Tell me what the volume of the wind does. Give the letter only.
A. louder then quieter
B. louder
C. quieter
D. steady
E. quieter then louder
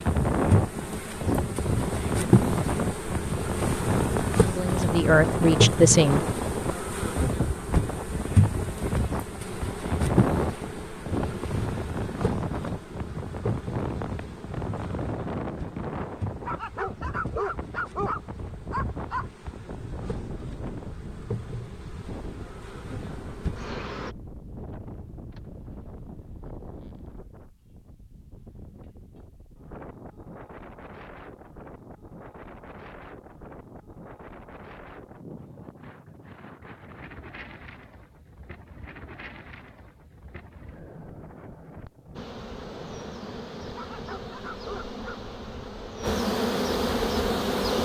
C.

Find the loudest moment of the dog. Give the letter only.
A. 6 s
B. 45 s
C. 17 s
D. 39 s
C.